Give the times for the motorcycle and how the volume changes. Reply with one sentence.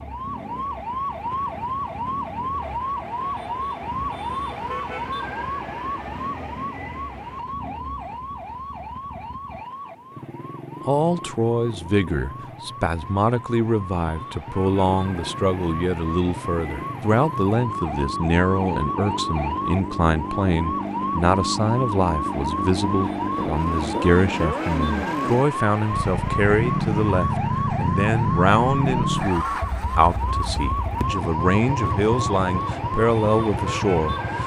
The motorcycle can be heard from 0.0 to 34.4 s, getting louder.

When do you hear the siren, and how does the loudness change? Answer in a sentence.
You can hear the siren from 0.0 to 34.4 s, getting quieter then louder.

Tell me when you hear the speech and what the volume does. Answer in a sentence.
The speech can be heard from 10.8 to 34.4 s, at a steady volume.